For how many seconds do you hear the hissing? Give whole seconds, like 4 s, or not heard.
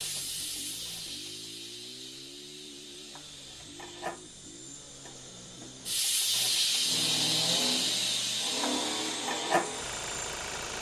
11 s.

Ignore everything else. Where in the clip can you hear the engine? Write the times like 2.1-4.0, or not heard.
0.0-10.7.